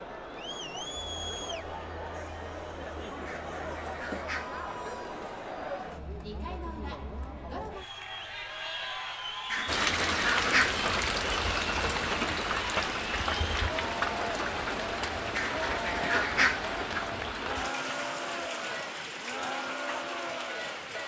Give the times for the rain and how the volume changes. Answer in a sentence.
You can hear the rain from 9.7 to 21.0 s, getting quieter.